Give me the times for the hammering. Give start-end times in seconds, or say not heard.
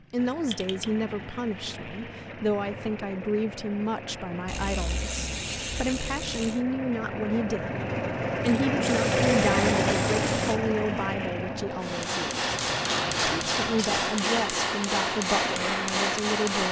11.8-16.6.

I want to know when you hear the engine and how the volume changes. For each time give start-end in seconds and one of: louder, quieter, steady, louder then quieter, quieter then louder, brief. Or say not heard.
0.0-16.6 louder then quieter.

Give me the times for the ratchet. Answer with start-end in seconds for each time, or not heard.
0.5-1.1, 4.5-6.6, 8.4-10.6, 12.5-14.1.